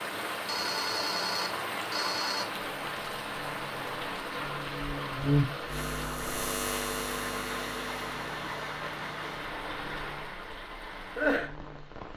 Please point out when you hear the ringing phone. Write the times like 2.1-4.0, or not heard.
0.5-2.5.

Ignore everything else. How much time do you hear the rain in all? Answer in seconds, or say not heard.
12 s.